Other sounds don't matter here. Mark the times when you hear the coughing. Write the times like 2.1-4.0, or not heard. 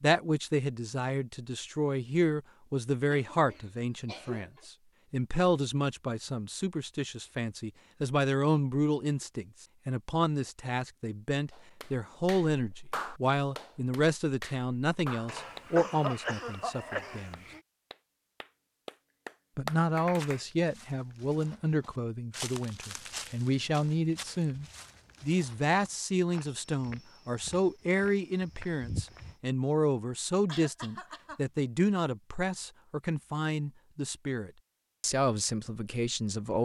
3.1-4.7, 15.2-17.6, 30.4-31.4.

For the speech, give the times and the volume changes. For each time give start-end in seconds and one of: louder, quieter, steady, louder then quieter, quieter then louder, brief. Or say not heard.
0.0-17.4 steady
19.6-36.6 steady.